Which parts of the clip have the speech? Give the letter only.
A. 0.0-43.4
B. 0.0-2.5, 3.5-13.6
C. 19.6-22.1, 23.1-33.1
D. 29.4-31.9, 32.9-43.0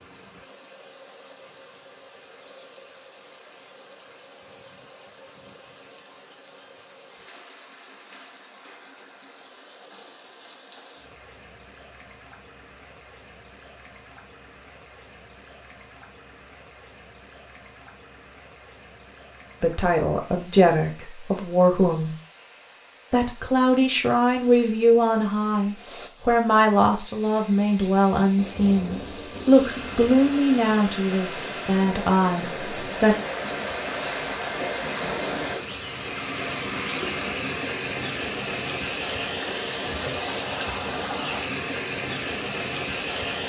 C.